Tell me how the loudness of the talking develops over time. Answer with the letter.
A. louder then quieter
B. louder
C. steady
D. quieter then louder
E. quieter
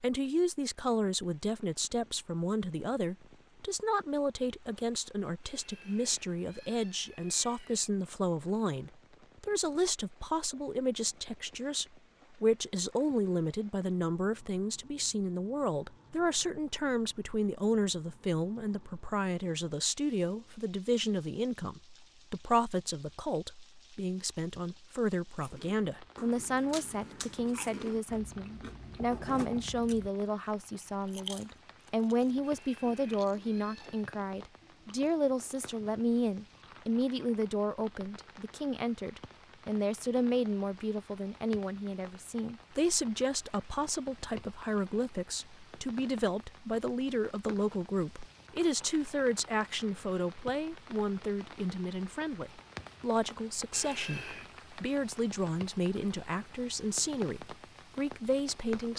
C.